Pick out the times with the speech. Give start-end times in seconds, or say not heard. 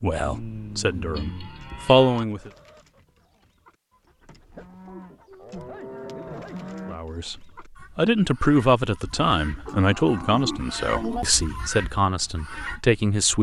0.0-2.5, 6.8-13.3.